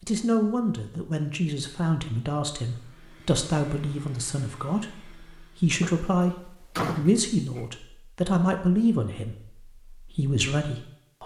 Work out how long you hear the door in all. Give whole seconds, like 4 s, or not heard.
2 s.